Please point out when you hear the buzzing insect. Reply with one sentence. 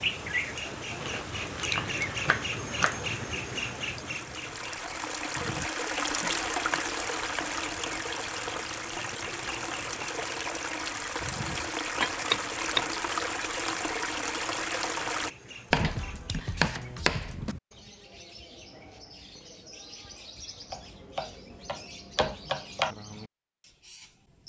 You can't hear the buzzing insect here.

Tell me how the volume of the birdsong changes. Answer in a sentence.
The loudness of the birdsong goes down.